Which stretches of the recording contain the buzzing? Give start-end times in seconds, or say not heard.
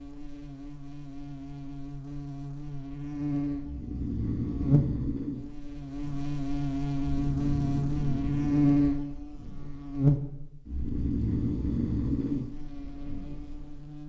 0.0-14.0.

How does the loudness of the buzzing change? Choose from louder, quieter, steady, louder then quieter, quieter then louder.
louder then quieter.